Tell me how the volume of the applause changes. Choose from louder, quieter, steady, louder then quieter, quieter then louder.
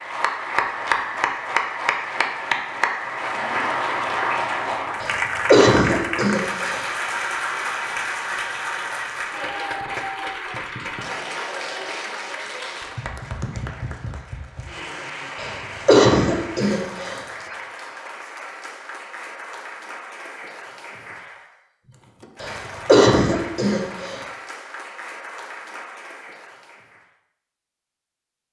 quieter.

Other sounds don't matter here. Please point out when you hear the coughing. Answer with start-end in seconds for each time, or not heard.
5.0-6.8, 15.3-17.2, 22.4-24.2.